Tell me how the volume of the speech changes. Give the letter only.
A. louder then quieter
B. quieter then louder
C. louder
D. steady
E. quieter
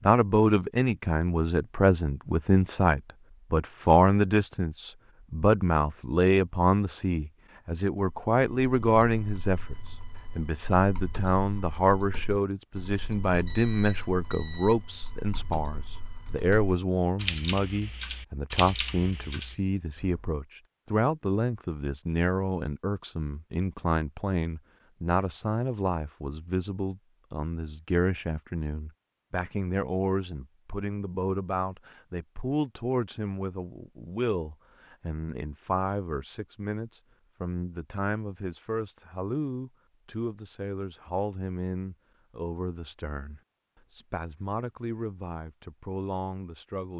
E.